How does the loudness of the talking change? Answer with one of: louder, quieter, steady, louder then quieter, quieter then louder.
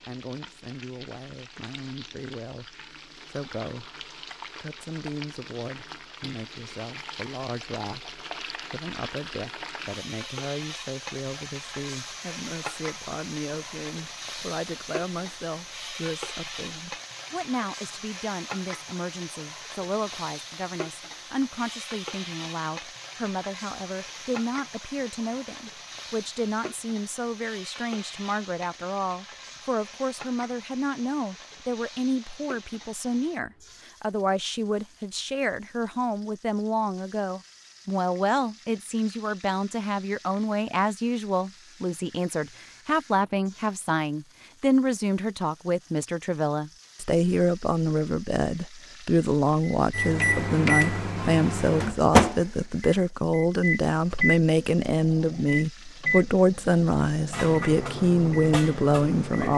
louder.